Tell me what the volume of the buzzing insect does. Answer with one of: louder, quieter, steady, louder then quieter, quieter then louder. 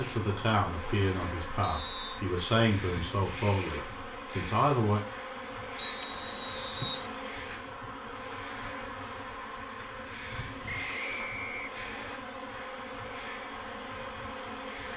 steady.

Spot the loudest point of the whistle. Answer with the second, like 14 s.
6 s.